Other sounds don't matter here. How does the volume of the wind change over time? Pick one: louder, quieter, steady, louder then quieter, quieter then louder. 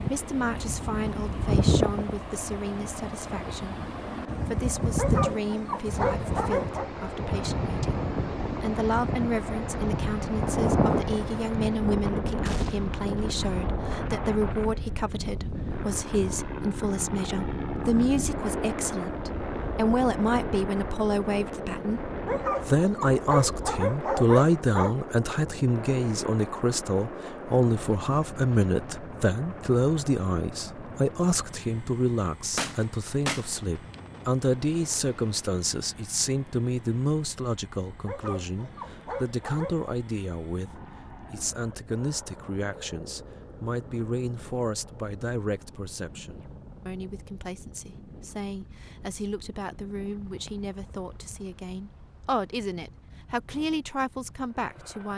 quieter.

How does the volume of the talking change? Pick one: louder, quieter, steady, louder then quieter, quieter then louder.
louder then quieter.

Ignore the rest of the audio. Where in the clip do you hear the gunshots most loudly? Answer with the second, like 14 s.
33 s.